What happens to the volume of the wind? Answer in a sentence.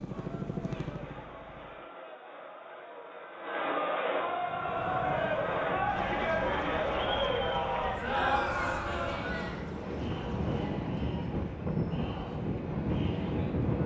The volume of the wind goes up.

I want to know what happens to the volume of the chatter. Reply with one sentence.
The loudness of the chatter goes up, then down.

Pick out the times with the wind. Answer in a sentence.
The wind can be heard from 4.2 to 13.8 s.